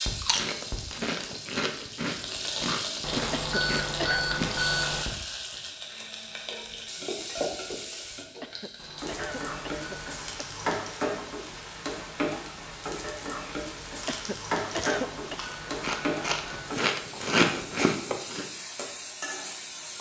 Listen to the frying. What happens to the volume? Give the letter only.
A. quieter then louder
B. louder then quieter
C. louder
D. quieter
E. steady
E.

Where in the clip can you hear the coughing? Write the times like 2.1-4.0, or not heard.
3.4-4.2, 8.4-10.5, 14.1-15.4.